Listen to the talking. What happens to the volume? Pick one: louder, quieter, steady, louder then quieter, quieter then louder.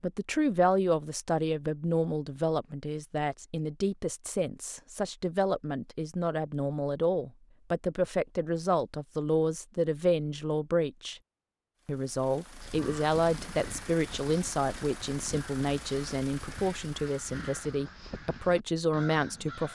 steady.